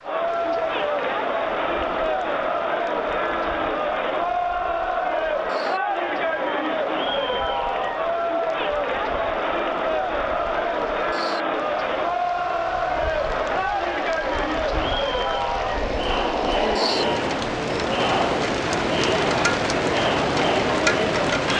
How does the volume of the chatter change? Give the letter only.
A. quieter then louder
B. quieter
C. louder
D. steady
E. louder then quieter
D.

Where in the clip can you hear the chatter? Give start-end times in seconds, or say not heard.
0.0-21.5.